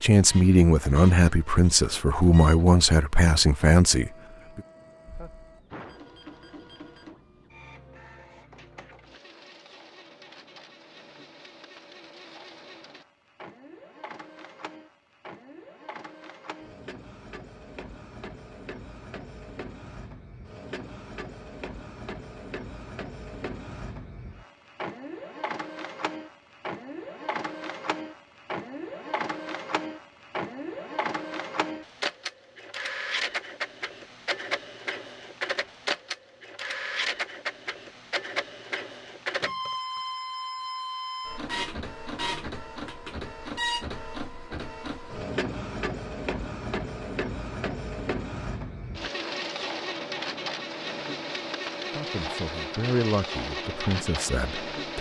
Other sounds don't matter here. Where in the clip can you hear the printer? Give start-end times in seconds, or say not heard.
0.1-54.9.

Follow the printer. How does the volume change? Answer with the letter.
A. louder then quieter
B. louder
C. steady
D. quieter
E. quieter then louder
B.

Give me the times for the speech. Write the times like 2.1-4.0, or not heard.
0.0-4.6, 51.9-54.9.